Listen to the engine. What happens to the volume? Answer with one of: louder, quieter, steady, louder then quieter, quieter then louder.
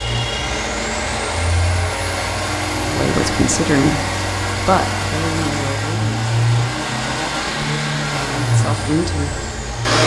steady.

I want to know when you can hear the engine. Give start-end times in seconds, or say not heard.
0.0-10.0.